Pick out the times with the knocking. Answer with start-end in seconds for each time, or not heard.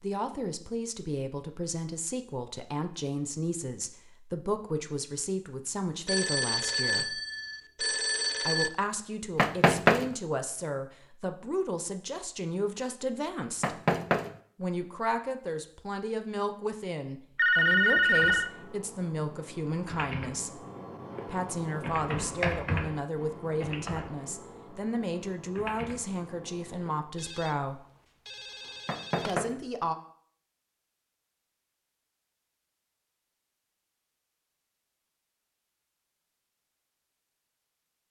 9.3-10.2, 13.6-14.3, 28.9-29.6.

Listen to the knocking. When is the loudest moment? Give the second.
10 s.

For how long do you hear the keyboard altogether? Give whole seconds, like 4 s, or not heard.
9 s.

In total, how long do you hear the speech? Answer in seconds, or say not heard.
26 s.